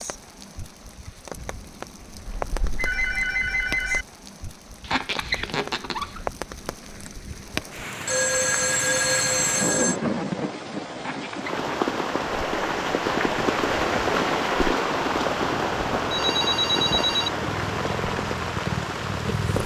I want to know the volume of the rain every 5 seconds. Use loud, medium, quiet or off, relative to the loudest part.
quiet, medium, loud, loud.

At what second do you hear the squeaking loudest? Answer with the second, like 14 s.
5 s.